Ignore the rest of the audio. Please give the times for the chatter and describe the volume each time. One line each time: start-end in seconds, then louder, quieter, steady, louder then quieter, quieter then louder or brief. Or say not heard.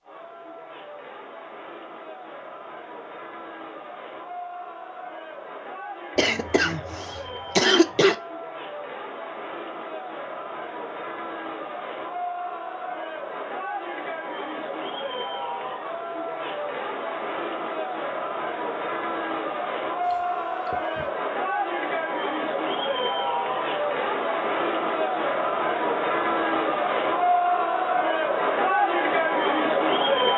0.0-30.3 louder.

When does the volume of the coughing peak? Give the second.
8 s.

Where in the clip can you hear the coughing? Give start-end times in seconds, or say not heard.
6.2-8.2, 20.0-21.1.